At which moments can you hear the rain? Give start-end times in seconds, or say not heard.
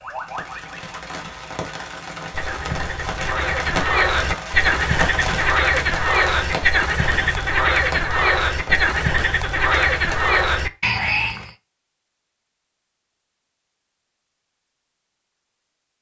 0.0-10.5.